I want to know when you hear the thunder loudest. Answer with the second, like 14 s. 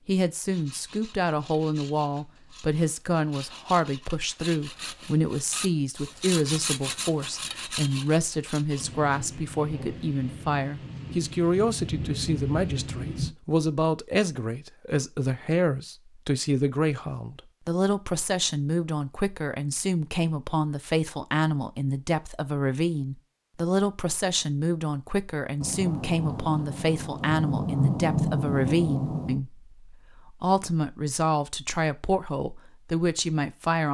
28 s.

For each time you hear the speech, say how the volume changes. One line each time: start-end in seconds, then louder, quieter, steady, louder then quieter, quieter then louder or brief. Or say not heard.
0.1-33.8 steady.